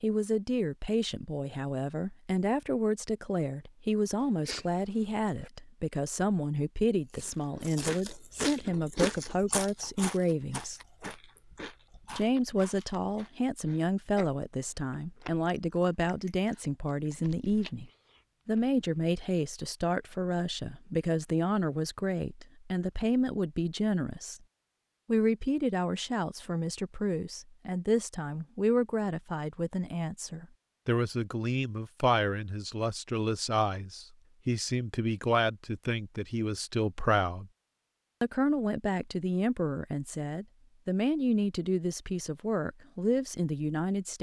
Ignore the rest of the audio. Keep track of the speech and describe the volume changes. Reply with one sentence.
The volume of the speech stays about the same.